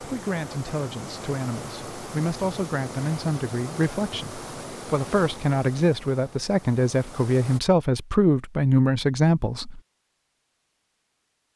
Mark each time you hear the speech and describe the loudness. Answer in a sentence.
The speech can be heard from 0.0 to 9.8 s, getting louder.